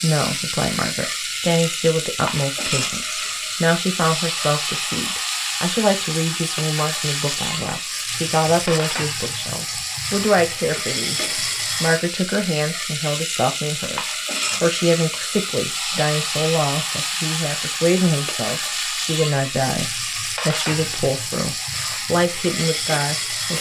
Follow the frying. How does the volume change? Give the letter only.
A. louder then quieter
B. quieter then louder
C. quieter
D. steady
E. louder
D.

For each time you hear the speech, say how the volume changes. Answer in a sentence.
You can hear the speech from 0.0 to 23.5 s, at a steady volume.